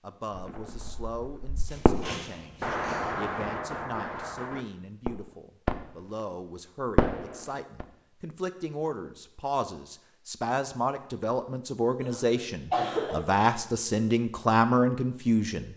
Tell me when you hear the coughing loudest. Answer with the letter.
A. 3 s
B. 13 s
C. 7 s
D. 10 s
B.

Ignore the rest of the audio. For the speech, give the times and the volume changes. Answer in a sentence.
The speech can be heard from 0.0 to 15.7 s, getting louder.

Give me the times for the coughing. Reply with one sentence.
You can hear the coughing from 1.6 to 3.1 s and from 12.0 to 13.2 s.